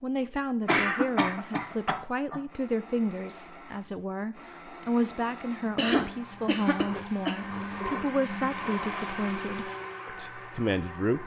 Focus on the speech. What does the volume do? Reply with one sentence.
The volume of the speech stays about the same.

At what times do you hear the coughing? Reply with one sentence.
You can hear the coughing from 0.7 to 2.4 s and from 5.8 to 7.3 s.